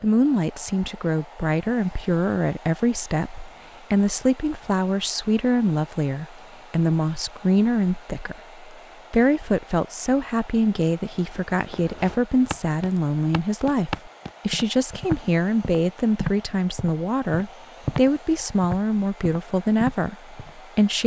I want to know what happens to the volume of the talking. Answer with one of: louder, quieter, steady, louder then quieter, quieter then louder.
steady.